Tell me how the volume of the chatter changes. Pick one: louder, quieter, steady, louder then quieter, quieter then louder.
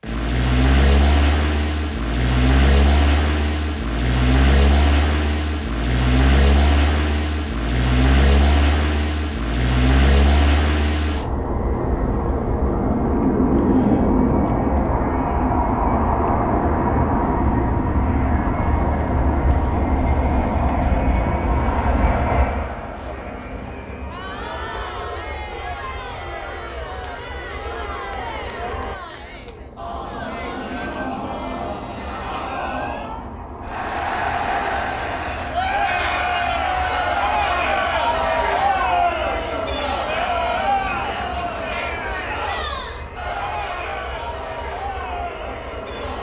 louder then quieter.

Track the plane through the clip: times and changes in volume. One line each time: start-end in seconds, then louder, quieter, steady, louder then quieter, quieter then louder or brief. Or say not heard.
0.0-46.1 quieter.